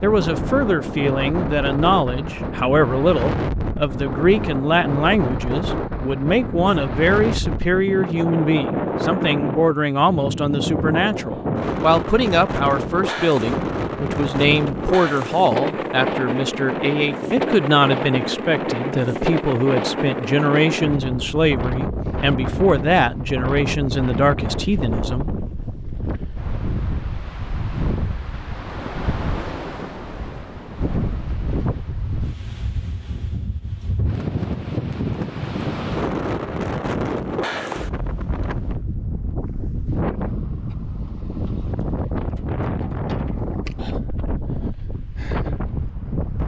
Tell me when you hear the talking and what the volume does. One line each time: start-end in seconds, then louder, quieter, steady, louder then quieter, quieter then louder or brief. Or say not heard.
0.0-25.3 steady.